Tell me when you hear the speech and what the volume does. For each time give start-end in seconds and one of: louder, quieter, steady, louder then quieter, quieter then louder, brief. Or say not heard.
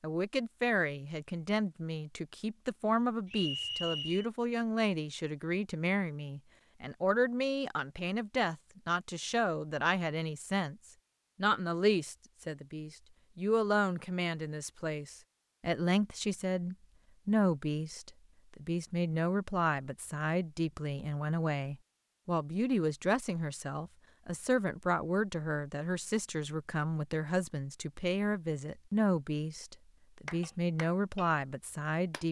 0.0-10.8 steady
11.3-32.2 steady.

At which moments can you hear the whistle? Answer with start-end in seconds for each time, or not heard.
3.2-4.3.